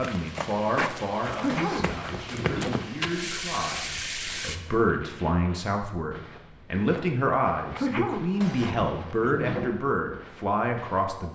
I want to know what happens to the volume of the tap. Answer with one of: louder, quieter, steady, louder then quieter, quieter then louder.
louder.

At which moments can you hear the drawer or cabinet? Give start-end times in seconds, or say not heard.
1.4-2.8, 8.4-9.8.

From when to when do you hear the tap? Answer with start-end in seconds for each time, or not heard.
0.0-4.6.